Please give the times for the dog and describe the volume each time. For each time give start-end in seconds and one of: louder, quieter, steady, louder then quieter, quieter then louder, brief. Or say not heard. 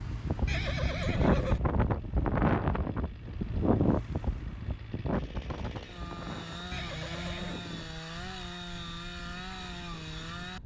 not heard.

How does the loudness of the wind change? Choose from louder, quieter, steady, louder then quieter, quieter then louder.
quieter.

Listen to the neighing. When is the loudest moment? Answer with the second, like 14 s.
1 s.